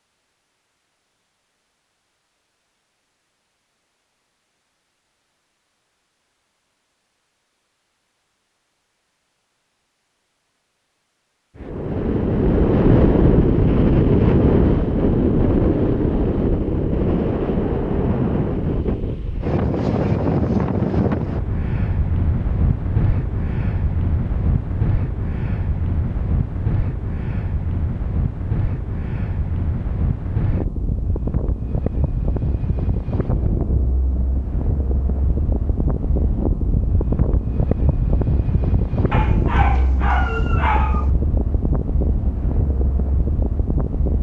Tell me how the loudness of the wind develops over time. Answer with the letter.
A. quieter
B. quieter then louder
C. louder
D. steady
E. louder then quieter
A.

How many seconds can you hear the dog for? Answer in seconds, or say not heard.
2 s.